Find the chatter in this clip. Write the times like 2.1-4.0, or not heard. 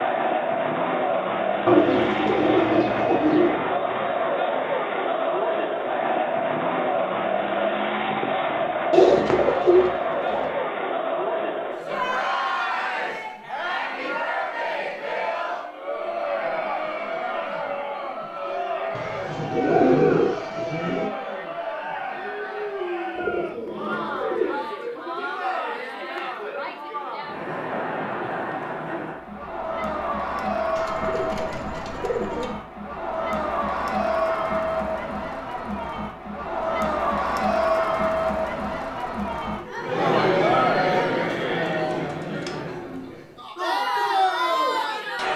0.0-45.3.